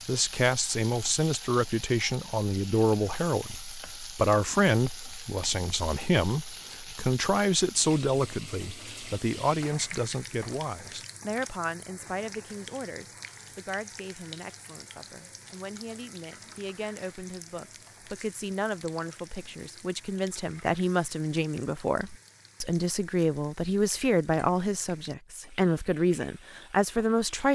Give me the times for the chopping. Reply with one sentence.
You can't hear the chopping here.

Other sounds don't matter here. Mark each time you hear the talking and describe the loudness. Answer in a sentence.
The talking can be heard from 0.1 to 27.5 s, getting quieter then louder.